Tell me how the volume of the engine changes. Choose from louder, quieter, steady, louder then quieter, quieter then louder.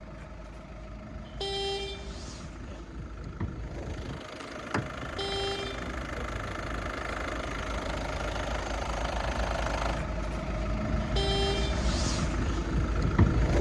louder.